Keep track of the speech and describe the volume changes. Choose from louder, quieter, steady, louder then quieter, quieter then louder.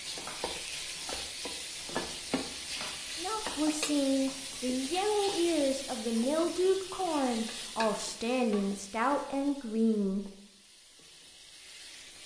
steady.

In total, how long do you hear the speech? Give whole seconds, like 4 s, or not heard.
7 s.